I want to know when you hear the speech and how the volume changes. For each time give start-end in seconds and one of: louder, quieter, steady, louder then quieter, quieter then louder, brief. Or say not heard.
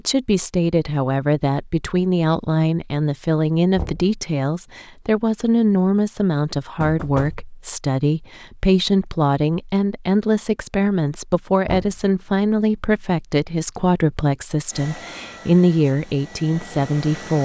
0.1-17.4 steady.